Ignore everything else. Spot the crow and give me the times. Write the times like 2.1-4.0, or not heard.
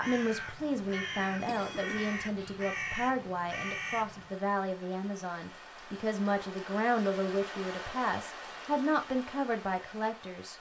0.0-4.3.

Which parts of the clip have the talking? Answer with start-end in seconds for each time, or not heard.
0.0-10.5.